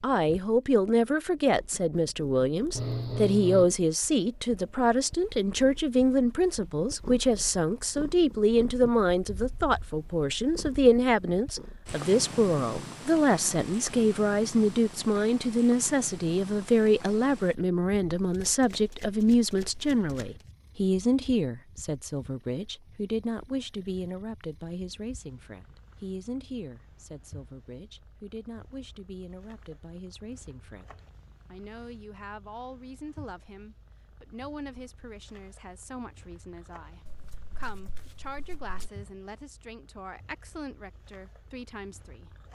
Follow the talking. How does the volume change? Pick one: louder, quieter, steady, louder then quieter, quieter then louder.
quieter.